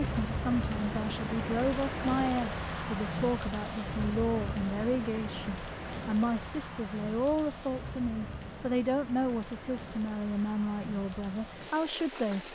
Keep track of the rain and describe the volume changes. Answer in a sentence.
The loudness of the rain goes down.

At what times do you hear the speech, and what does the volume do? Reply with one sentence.
You can hear the speech from 0.0 to 12.4 s, at a steady volume.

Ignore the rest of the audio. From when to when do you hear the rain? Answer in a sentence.
You can hear the rain from 0.0 to 12.4 s.